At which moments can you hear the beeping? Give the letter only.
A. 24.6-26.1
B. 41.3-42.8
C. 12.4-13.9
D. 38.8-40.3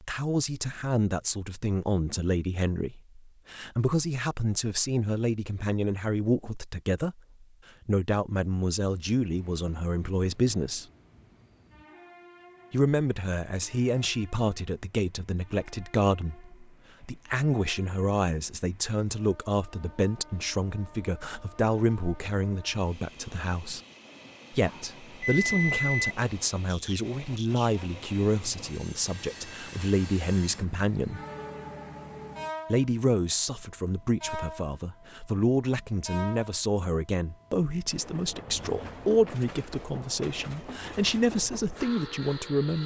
A.